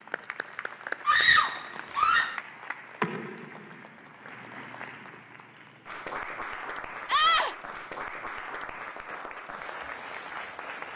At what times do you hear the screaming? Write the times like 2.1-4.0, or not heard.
1.1-2.4, 7.0-7.5.